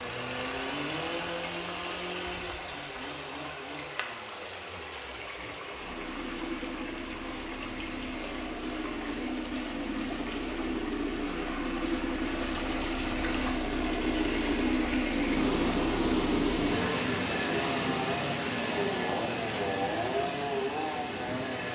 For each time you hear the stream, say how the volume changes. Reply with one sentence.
The stream can be heard from 0.0 to 21.7 s, getting louder.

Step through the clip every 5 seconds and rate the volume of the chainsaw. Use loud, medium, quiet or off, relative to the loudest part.
medium, medium, loud, loud, loud.